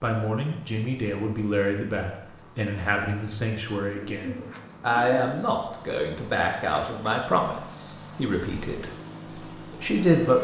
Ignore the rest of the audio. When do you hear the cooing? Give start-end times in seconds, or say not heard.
4.0-5.5.